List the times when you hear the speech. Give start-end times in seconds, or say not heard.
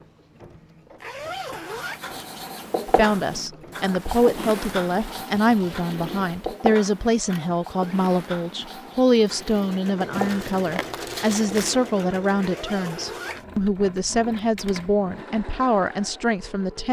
2.9-16.8.